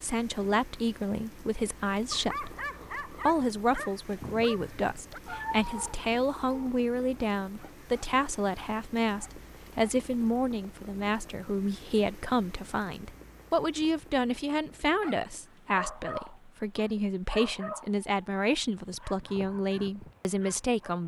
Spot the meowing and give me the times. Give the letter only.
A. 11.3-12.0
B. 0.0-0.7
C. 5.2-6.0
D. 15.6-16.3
C.